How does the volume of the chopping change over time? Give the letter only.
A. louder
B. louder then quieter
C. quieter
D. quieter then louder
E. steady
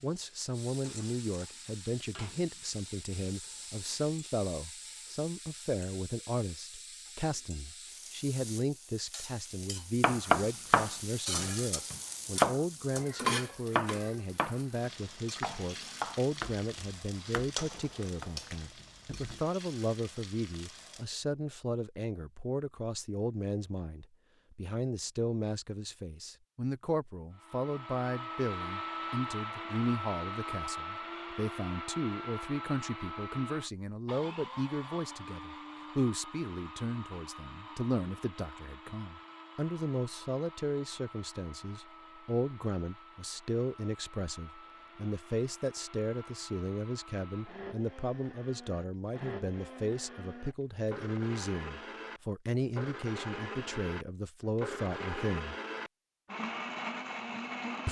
C.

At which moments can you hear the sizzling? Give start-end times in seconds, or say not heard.
0.0-21.1.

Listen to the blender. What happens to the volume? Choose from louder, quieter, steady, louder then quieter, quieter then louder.
quieter then louder.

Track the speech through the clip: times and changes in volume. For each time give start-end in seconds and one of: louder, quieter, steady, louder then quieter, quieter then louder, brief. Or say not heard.
0.0-55.5 steady.